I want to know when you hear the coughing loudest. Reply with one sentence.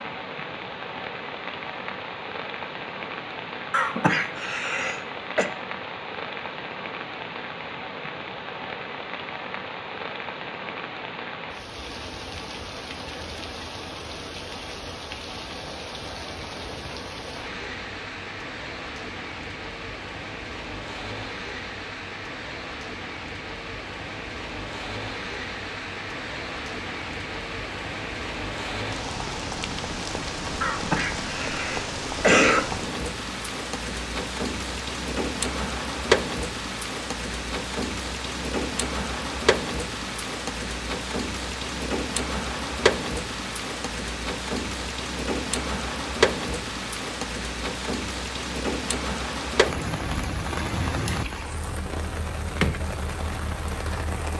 The loudest moment of the coughing is at 32 seconds.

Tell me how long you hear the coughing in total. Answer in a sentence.
The coughing can be heard for 4 seconds in total.